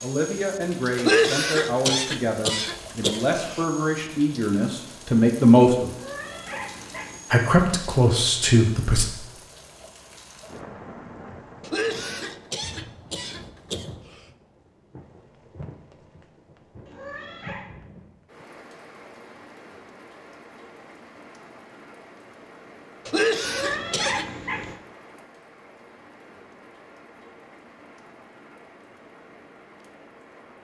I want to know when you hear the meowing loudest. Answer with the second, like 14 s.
24 s.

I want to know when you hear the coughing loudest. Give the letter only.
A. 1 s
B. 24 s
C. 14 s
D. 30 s
A.